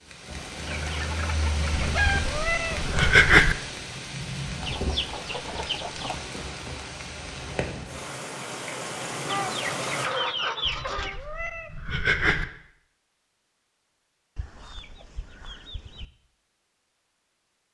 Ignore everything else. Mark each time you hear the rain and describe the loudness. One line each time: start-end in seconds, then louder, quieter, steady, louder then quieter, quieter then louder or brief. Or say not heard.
0.0-10.1 steady.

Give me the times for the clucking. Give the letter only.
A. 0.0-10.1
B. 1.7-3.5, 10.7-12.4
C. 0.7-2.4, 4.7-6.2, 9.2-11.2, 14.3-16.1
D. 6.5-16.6
C.